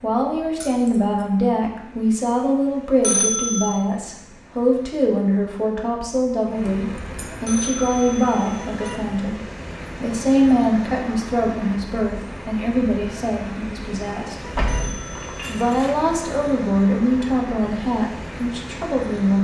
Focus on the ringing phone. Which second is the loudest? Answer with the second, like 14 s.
3 s.